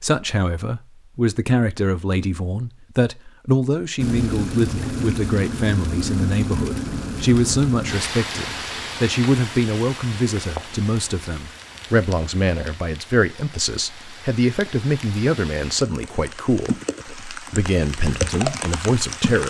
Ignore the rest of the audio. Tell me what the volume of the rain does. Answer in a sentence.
The loudness of the rain goes down, then up.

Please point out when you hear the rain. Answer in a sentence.
The rain can be heard from 4.0 to 19.4 s.